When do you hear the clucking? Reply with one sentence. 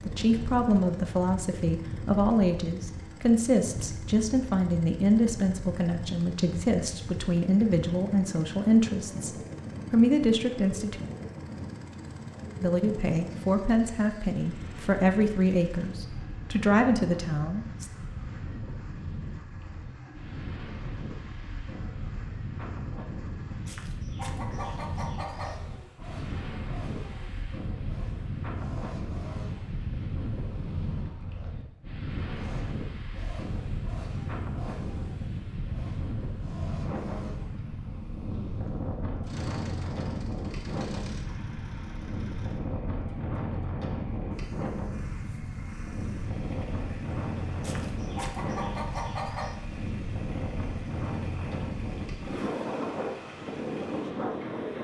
The clucking can be heard from 23.6 to 25.6 s and from 47.6 to 49.5 s.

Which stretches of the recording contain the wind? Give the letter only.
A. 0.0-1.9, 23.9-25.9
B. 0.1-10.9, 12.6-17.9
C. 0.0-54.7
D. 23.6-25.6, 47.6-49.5
C.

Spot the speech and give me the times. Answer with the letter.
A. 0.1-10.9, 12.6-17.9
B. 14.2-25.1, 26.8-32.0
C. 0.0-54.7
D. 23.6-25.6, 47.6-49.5
A.